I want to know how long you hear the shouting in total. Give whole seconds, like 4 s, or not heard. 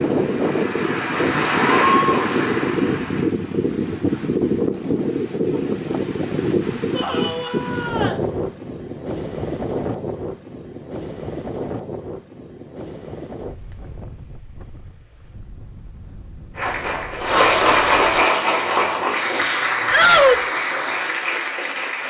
2 s.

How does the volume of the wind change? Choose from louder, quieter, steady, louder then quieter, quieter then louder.
quieter.